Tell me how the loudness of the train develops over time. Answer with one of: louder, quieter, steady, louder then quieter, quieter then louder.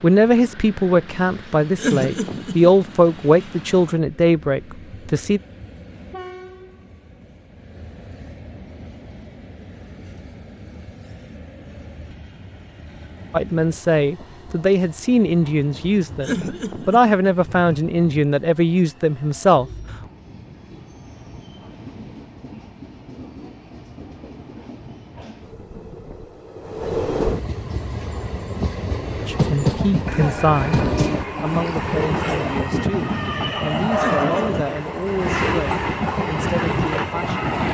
louder.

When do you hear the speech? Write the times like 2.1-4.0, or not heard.
0.0-5.4, 13.3-19.7, 29.1-37.5.